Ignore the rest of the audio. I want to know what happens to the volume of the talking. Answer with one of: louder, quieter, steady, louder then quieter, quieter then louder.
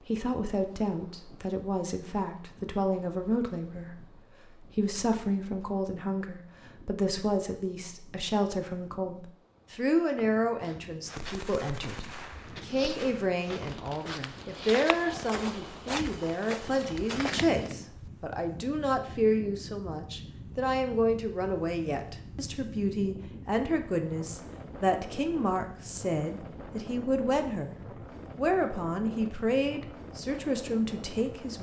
steady.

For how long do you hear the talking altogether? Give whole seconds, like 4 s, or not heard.
31 s.